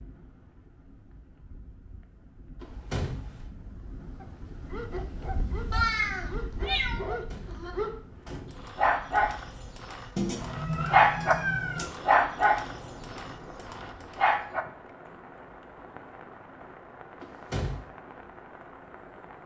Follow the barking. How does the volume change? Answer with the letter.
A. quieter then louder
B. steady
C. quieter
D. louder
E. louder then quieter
E.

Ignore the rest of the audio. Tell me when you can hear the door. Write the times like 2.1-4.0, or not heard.
2.6-3.4, 7.2-8.7, 17.2-17.8.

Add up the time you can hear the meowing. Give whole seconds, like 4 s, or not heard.
4 s.